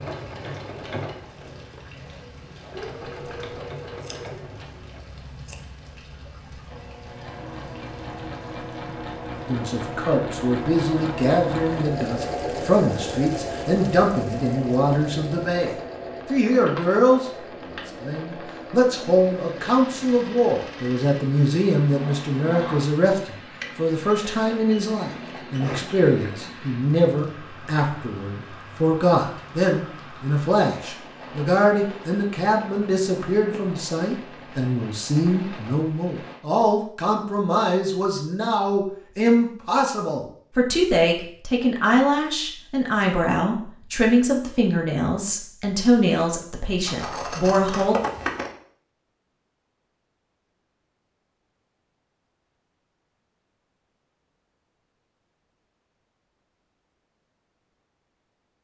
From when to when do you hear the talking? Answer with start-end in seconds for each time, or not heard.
9.4-17.2, 18.0-48.0.